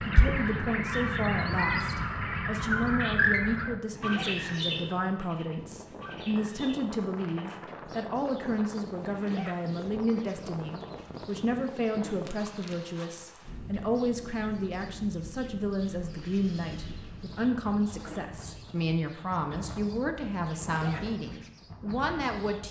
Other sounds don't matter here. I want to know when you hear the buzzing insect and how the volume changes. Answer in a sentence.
The buzzing insect can't be heard in this clip.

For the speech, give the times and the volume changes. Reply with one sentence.
You can hear the speech from 0.1 to 22.6 s, at a steady volume.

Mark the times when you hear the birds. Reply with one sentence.
You can hear the birds from 0.0 to 22.6 s.